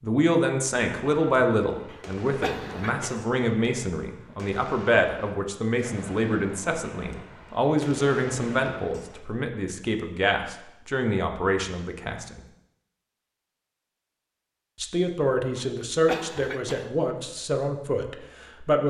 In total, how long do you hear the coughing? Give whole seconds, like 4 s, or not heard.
3 s.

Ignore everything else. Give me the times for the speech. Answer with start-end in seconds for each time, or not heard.
0.0-12.4, 14.8-18.8.